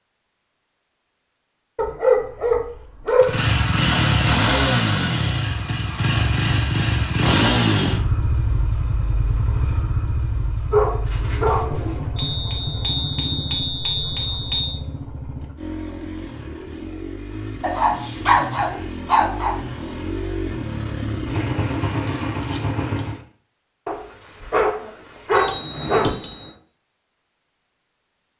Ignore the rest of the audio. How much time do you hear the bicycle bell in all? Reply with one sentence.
The bicycle bell can be heard for 6 seconds in total.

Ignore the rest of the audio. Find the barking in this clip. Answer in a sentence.
You can hear the barking from 1.8 to 3.5 s, from 10.7 to 12.0 s, from 17.6 to 19.6 s and from 23.9 to 26.1 s.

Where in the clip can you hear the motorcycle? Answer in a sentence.
You can hear the motorcycle from 3.2 to 23.2 s.